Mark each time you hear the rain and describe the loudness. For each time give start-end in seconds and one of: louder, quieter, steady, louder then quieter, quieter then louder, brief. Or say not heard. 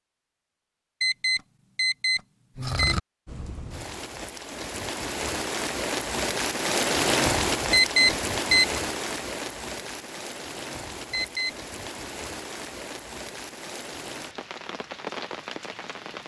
3.2-16.2 louder then quieter.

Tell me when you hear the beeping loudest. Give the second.
8 s.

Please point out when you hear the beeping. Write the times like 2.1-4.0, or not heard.
1.0-3.0, 7.7-8.8, 11.1-11.6.